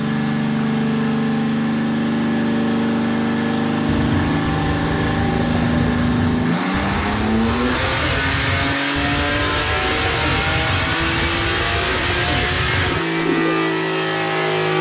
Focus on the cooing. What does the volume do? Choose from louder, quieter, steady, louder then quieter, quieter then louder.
steady.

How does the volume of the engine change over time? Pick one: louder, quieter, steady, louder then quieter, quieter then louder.
steady.